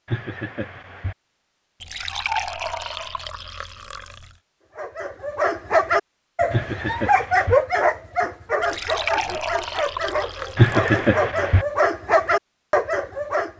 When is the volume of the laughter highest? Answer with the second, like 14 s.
11 s.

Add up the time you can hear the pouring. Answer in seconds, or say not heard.
5 s.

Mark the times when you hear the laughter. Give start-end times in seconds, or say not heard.
0.1-1.1, 6.5-7.6, 10.6-11.7.